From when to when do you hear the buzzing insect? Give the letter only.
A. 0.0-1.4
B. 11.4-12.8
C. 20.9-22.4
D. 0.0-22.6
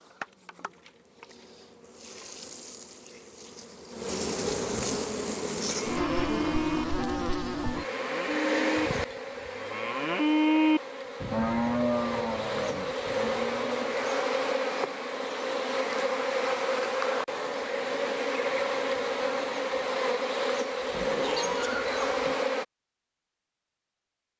D.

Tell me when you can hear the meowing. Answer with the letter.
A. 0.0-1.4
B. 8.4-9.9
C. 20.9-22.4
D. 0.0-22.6
C.